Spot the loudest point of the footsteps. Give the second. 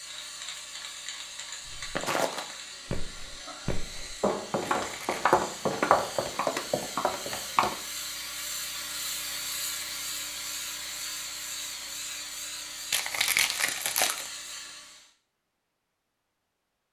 6 s.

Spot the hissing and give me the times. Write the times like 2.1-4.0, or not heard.
0.0-15.1.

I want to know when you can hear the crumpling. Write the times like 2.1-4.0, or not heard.
4.7-5.2, 12.9-14.3.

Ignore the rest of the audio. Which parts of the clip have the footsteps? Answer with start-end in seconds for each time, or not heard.
1.6-7.8.